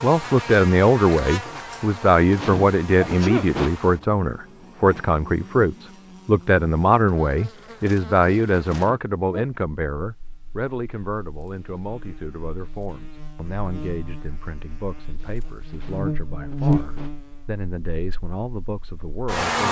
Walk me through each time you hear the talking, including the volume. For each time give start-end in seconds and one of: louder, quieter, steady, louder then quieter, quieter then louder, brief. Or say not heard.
0.0-19.6 quieter.